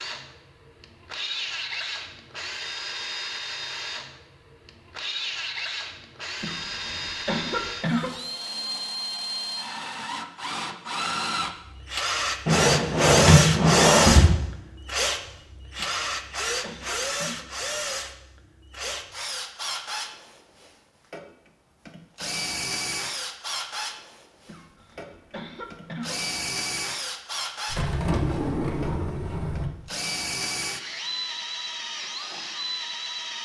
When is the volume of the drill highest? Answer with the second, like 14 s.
14 s.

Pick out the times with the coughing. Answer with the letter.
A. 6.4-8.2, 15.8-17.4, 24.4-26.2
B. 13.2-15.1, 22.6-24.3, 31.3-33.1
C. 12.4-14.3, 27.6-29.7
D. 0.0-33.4
A.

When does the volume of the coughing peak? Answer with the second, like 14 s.
8 s.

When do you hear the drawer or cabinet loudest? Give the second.
13 s.